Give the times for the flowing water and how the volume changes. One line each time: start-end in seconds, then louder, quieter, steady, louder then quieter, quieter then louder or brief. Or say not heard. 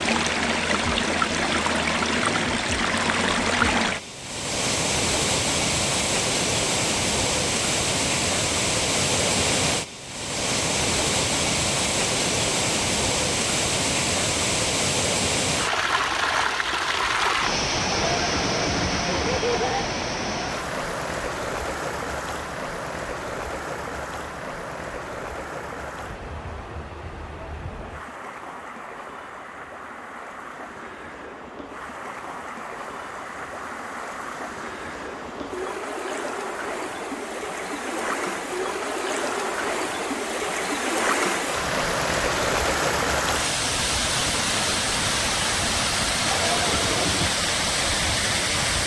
0.0-48.8 quieter then louder.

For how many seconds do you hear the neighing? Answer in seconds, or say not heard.
3 s.